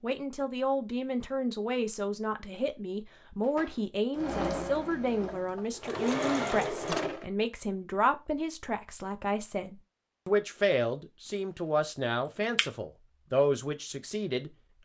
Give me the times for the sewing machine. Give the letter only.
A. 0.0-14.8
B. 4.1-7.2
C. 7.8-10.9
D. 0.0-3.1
B.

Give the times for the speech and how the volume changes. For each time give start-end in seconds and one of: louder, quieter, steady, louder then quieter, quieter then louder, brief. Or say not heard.
0.0-14.8 steady.